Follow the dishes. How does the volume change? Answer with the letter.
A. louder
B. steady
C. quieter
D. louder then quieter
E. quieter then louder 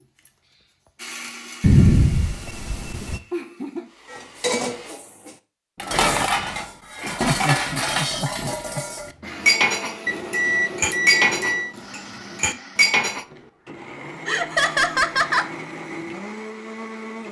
B.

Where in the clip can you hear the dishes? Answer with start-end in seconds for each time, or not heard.
4.1-13.2.